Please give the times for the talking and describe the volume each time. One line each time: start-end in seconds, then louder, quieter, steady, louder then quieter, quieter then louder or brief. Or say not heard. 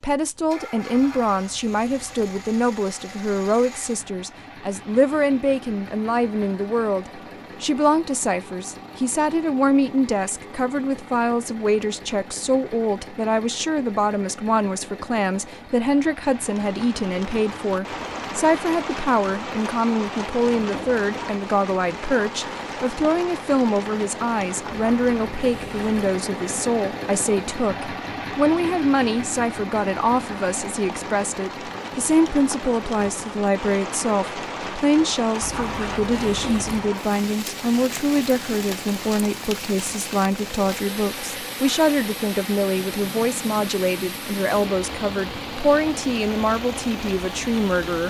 0.0-48.0 steady.